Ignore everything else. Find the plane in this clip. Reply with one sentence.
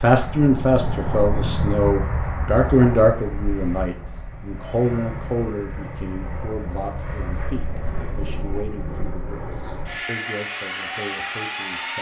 The plane can be heard from 0.0 to 11.9 s.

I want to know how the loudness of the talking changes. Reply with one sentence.
The volume of the talking goes down.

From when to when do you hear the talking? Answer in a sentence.
You can hear the talking from 0.0 to 11.9 s.